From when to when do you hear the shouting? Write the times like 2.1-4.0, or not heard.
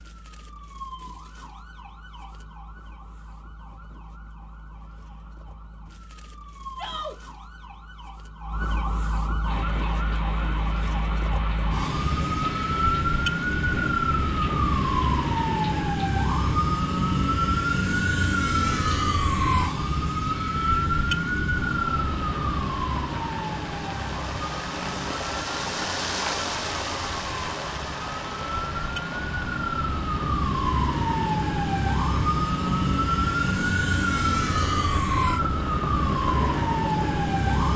6.8-7.2.